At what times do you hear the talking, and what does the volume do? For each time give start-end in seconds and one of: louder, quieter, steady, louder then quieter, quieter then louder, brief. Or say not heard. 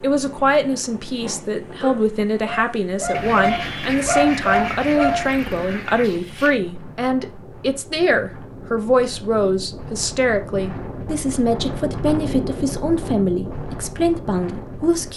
0.0-15.1 steady.